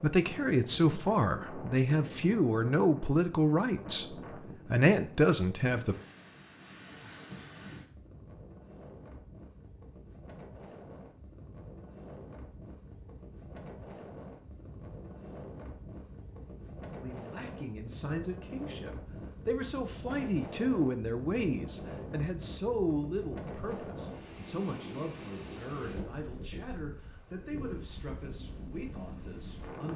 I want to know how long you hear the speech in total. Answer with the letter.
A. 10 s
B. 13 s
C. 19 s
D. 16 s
C.